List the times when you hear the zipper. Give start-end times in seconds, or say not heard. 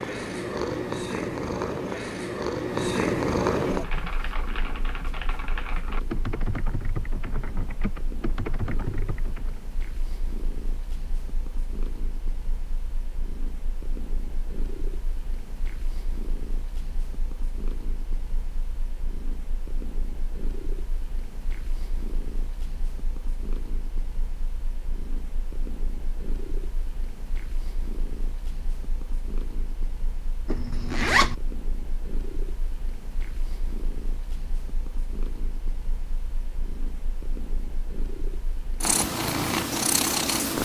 30.4-31.4.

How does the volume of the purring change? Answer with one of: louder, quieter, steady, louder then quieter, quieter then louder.
quieter then louder.